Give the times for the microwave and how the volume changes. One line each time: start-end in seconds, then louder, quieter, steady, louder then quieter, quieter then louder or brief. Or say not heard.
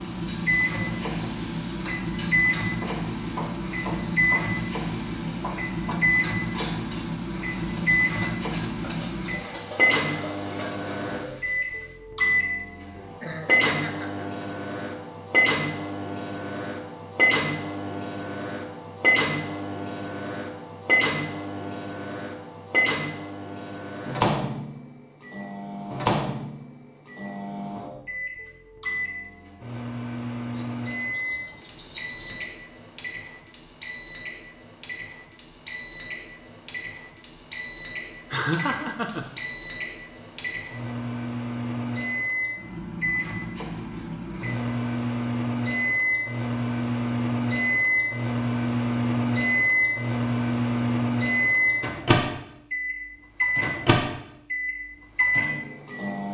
0.0-56.2 quieter then louder.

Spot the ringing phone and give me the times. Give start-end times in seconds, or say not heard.
not heard.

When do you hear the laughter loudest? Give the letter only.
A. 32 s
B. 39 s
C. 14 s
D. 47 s
B.